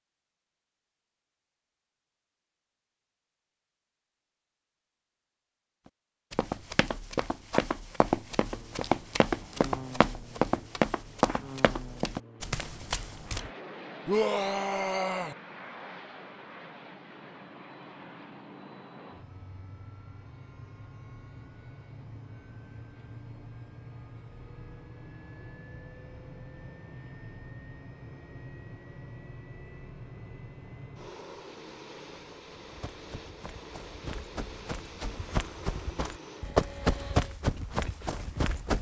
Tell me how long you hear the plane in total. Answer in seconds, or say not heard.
29 s.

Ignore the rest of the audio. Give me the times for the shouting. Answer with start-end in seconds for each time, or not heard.
14.1-15.3.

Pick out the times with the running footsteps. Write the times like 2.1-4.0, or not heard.
6.3-13.5, 32.6-38.7.